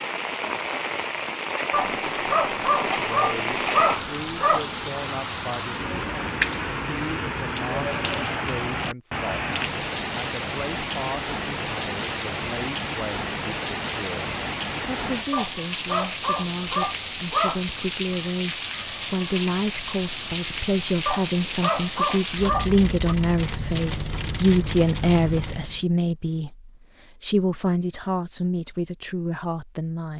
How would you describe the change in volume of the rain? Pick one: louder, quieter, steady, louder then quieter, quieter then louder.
steady.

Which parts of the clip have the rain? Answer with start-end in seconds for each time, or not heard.
0.0-25.9.